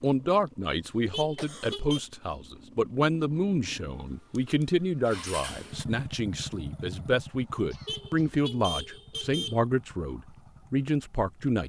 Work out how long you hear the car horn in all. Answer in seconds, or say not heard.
3 s.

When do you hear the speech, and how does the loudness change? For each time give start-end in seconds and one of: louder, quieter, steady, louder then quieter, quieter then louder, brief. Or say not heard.
0.0-11.6 steady.